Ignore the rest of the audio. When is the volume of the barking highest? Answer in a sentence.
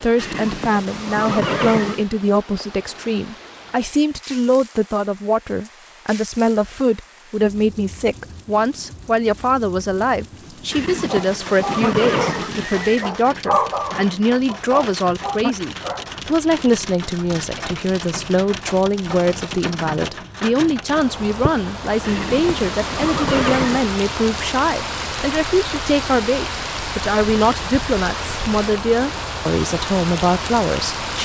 The loudest moment of the barking is at 14 seconds.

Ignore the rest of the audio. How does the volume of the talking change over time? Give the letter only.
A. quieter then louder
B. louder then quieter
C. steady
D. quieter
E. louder
C.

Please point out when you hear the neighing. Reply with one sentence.
The neighing can be heard from 0.1 to 2.0 s, from 10.7 to 13.1 s and from 22.0 to 23.9 s.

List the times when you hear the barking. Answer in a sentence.
The barking can be heard from 11.1 to 16.2 s.